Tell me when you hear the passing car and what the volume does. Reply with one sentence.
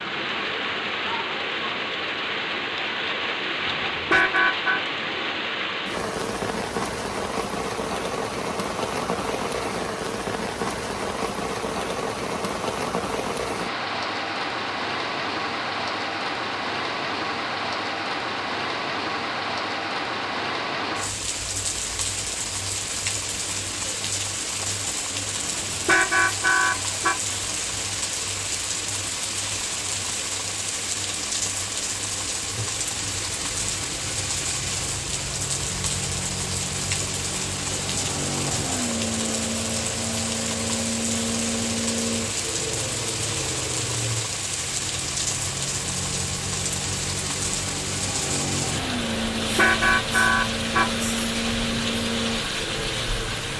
The passing car can be heard from 32.5 to 53.5 s, getting louder.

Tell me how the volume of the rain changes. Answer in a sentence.
The loudness of the rain stays about the same.